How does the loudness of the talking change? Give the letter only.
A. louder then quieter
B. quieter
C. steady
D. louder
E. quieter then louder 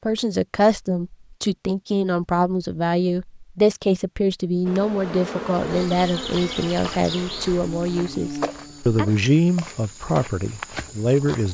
C.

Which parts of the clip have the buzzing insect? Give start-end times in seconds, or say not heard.
4.7-9.1.